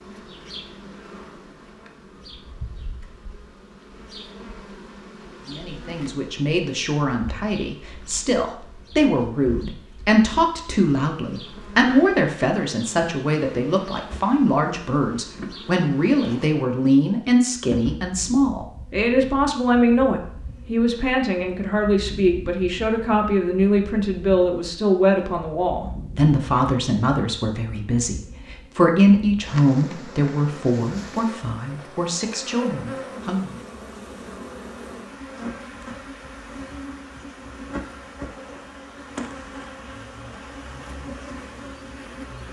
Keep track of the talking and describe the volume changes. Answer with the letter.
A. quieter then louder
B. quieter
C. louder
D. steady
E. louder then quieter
D.